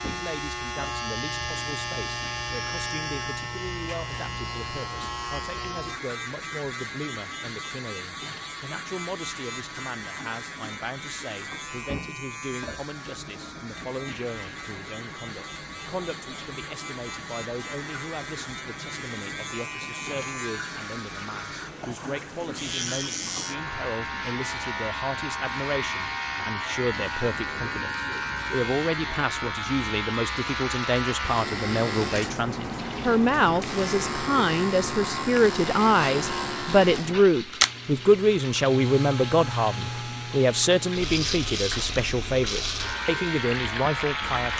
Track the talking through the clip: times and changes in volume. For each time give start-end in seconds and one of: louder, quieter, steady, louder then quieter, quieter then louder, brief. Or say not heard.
0.0-44.5 louder.